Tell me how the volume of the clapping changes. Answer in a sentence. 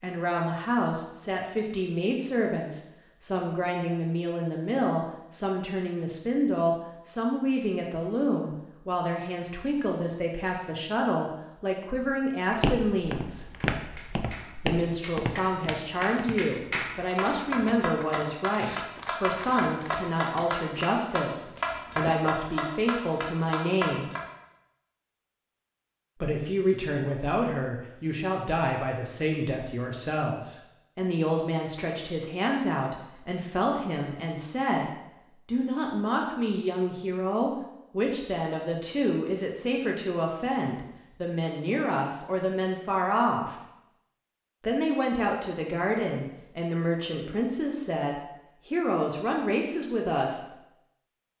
The loudness of the clapping goes up.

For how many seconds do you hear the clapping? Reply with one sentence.
You can hear the clapping for 11 seconds altogether.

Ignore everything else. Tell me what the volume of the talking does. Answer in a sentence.
The loudness of the talking stays about the same.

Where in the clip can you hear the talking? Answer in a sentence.
The talking can be heard from 0.0 to 13.4 s, from 14.7 to 24.1 s, from 26.2 to 43.6 s and from 44.6 to 50.5 s.